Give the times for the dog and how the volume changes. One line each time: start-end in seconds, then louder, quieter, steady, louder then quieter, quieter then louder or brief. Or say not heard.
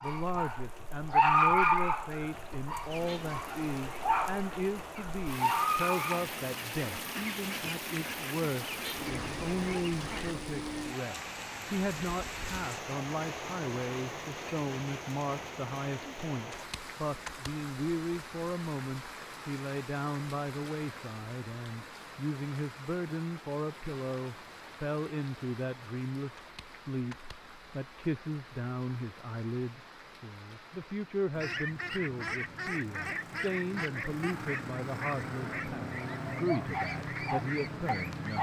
0.0-6.2 quieter then louder
36.0-38.3 brief.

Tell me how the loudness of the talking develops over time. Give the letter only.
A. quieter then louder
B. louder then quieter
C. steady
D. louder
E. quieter
C.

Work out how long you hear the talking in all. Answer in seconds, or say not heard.
38 s.